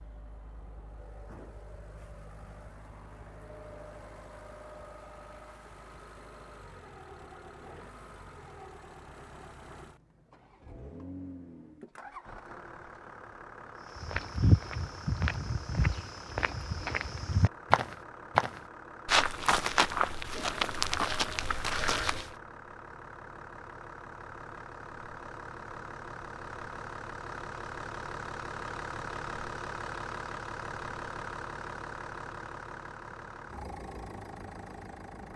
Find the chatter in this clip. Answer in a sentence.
You can't hear the chatter here.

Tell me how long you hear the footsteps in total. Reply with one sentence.
You can hear the footsteps for 8 seconds altogether.